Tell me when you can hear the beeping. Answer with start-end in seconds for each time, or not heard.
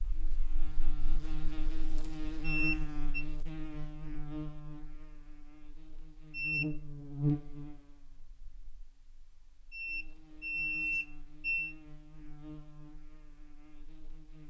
2.4-3.2, 6.3-6.7, 9.7-11.8.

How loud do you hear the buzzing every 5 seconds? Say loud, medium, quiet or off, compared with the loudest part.
loud, loud, quiet.